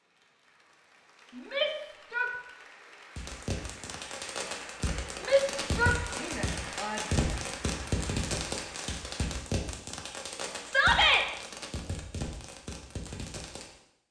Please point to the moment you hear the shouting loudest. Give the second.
11 s.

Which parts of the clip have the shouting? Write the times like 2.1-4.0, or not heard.
1.4-2.3, 5.2-7.0, 10.7-11.2.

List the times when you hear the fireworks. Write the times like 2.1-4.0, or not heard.
3.1-13.8.